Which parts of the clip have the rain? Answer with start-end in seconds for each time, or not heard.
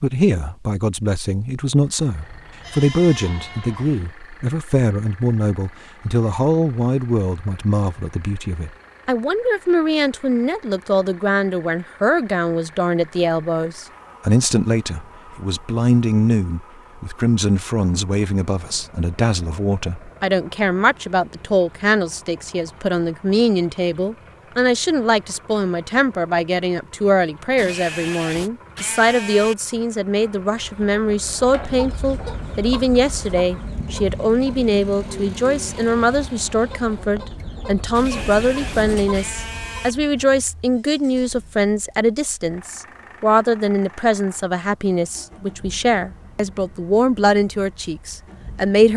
not heard.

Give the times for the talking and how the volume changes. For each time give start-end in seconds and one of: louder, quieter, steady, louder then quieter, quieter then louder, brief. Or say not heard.
0.0-48.9 steady.